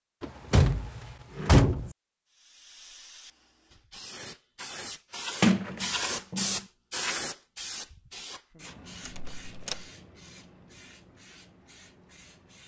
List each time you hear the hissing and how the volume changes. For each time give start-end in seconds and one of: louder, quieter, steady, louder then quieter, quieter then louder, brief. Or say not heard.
2.3-12.6 louder then quieter.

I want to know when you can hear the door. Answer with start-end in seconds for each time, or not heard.
0.2-1.9, 5.4-6.5, 9.1-9.8.